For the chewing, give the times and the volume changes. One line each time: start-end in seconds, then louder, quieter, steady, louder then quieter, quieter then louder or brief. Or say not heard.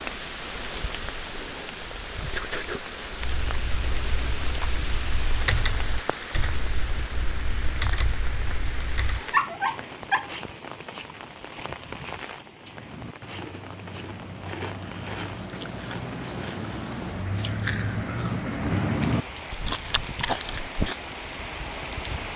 12.6-20.9 louder.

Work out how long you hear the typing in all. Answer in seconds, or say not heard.
6 s.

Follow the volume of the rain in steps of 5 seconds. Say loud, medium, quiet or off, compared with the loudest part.
loud, loud, medium, medium, loud.